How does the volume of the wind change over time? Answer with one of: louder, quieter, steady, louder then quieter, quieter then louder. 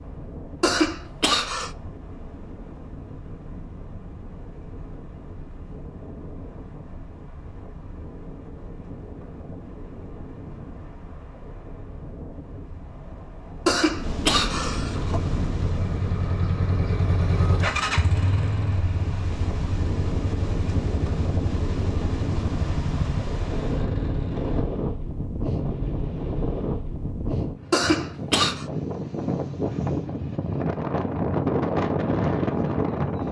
louder.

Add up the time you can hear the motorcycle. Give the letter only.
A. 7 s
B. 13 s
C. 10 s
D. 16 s
C.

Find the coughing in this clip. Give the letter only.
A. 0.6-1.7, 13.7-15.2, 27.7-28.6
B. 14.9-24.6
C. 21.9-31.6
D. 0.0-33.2
A.